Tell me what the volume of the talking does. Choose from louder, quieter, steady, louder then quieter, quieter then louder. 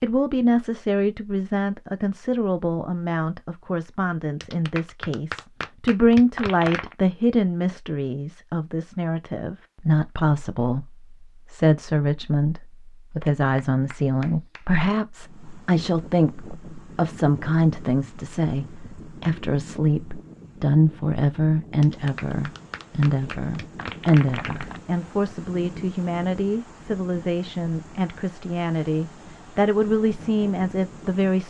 steady.